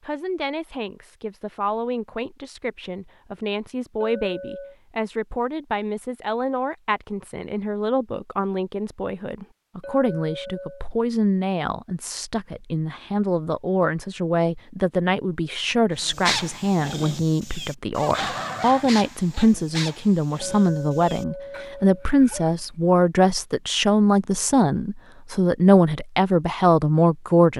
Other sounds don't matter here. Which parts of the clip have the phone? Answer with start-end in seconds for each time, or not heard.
not heard.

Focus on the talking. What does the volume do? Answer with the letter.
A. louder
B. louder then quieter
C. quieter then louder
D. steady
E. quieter
A.